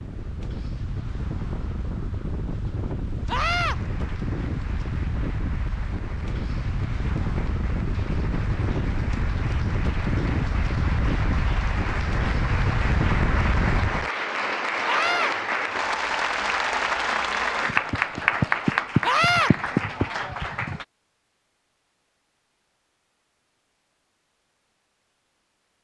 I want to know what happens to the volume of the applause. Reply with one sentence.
The volume of the applause goes up.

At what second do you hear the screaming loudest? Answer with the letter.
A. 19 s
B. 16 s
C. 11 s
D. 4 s
A.